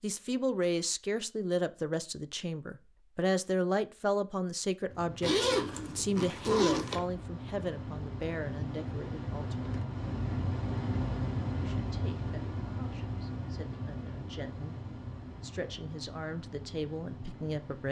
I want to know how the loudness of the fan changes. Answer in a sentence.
The volume of the fan goes up, then down.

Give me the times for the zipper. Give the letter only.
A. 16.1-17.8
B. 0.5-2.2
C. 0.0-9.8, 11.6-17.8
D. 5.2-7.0
D.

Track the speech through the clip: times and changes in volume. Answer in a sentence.
The speech can be heard from 0.0 to 9.8 s, getting quieter; and from 11.6 to 17.8 s, getting louder.